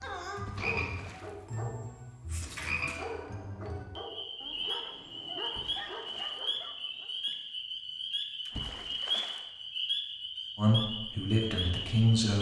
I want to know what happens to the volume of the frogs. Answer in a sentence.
The volume of the frogs stays about the same.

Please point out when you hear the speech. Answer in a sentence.
The speech can be heard from 10.6 to 12.3 s.